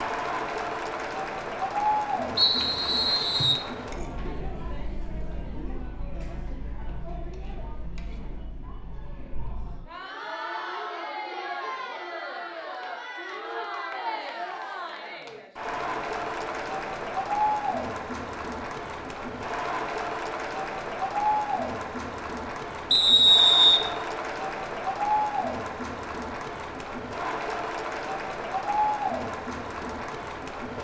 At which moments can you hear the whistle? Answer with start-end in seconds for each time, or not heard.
2.4-3.6, 22.9-23.8.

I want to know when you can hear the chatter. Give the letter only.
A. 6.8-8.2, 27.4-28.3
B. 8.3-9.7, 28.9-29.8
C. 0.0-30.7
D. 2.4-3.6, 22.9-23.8
C.